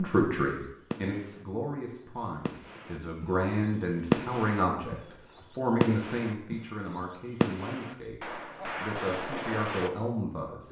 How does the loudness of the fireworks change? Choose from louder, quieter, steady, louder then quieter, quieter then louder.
louder then quieter.